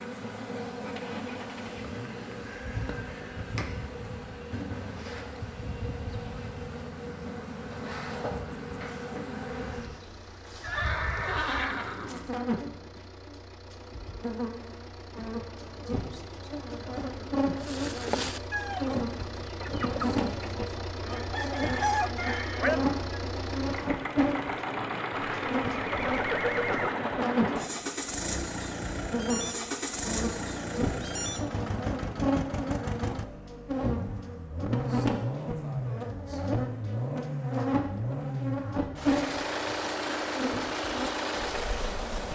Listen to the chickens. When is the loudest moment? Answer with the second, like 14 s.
22 s.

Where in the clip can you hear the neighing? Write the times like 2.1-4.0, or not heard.
10.6-12.3, 25.2-26.9.